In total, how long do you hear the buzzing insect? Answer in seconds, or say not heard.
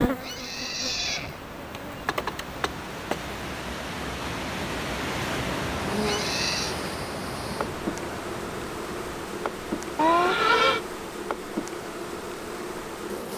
11 s.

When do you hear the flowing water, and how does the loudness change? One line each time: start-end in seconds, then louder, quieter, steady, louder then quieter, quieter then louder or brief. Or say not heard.
0.0-13.3 louder then quieter.